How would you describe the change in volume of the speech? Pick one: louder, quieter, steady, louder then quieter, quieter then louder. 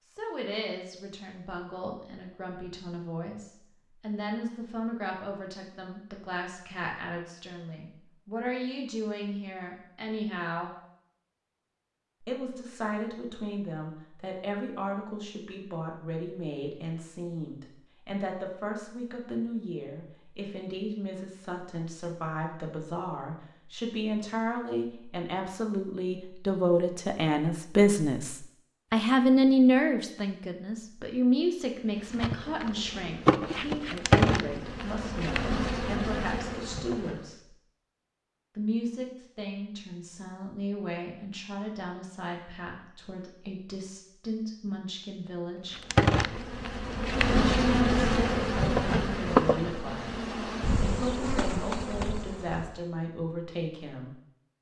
louder then quieter.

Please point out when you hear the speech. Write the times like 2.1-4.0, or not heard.
0.1-10.7, 12.2-37.5, 38.5-45.8, 47.4-54.1.